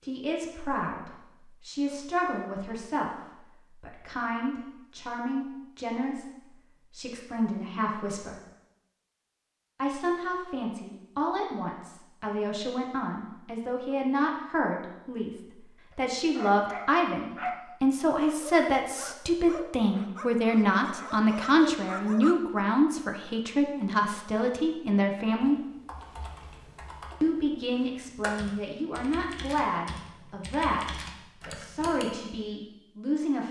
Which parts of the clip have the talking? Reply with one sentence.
The talking can be heard from 0.0 to 8.3 s, from 9.8 to 25.6 s and from 27.2 to 33.4 s.